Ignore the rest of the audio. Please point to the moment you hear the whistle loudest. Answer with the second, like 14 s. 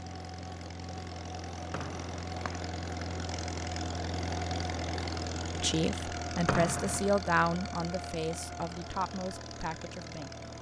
7 s.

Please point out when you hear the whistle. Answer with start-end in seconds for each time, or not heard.
1.7-2.6, 6.5-7.2.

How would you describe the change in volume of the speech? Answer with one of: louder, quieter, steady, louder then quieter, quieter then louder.
quieter.